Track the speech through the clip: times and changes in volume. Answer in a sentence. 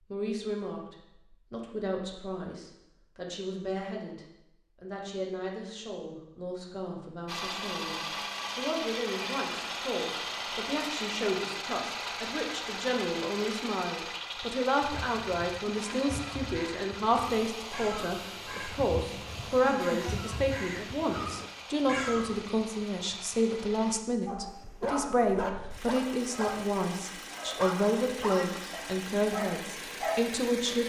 The speech can be heard from 0.1 to 30.8 s, getting louder.